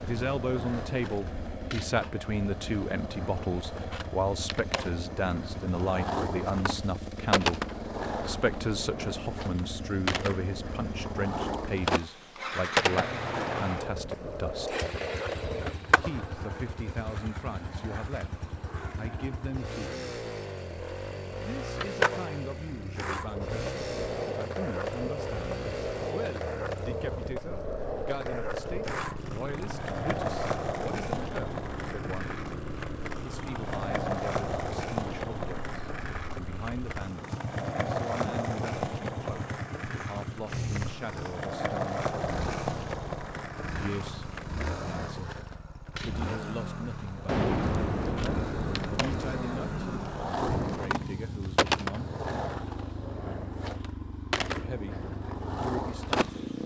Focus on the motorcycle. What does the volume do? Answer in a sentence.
The volume of the motorcycle stays about the same.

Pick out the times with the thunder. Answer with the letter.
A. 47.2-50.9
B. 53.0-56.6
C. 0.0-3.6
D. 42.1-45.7
A.